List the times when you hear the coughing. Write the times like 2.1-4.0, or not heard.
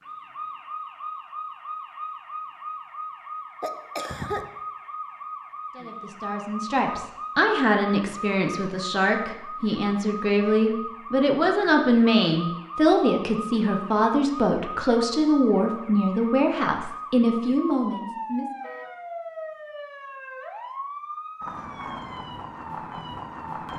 3.6-4.5.